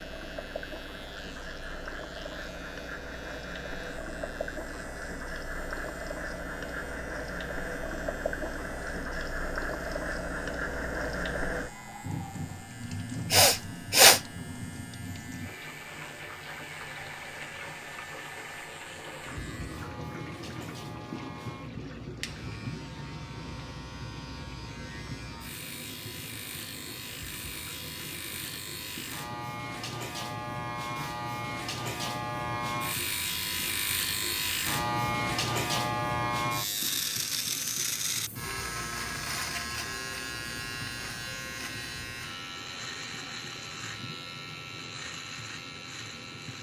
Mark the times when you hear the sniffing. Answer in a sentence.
The sniffing can be heard from 13.3 to 14.2 s.